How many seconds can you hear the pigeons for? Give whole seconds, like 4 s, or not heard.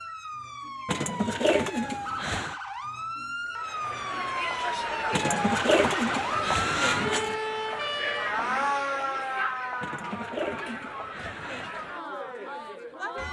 6 s.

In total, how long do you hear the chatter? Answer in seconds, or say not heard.
10 s.